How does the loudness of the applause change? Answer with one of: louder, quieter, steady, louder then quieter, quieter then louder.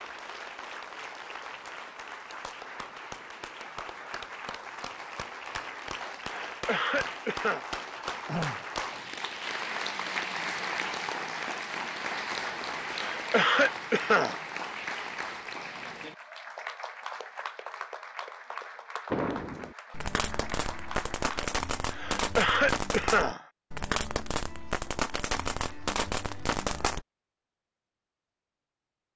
louder then quieter.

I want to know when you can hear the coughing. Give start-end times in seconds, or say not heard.
6.2-7.7, 12.8-14.4, 21.9-23.4.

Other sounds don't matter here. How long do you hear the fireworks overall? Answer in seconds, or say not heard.
8 s.